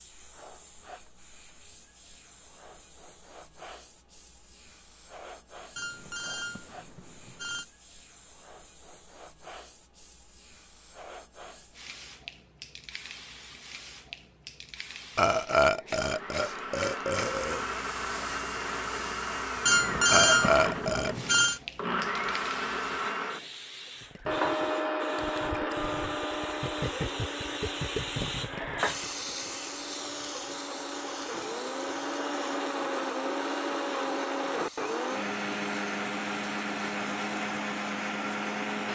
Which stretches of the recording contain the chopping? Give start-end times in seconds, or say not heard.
not heard.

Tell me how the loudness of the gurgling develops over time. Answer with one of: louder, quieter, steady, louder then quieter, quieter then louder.
louder.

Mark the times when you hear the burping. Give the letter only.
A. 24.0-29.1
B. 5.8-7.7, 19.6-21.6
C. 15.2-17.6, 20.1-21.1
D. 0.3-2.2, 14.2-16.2
C.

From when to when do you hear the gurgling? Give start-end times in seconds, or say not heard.
24.0-29.1.